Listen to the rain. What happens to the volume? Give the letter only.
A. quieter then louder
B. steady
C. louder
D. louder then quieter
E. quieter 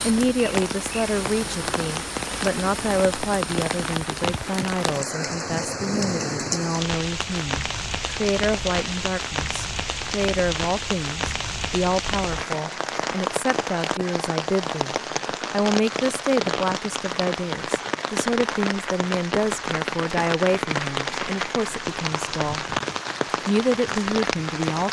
B.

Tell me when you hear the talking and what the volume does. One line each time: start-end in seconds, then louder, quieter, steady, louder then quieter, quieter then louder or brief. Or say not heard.
0.1-22.8 steady
23.4-24.8 brief.